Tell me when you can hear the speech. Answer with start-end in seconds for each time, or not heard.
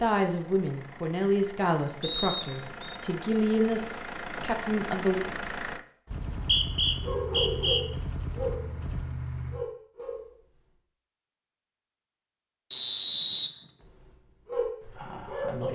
0.0-5.2.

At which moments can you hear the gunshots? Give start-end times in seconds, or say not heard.
6.1-9.7.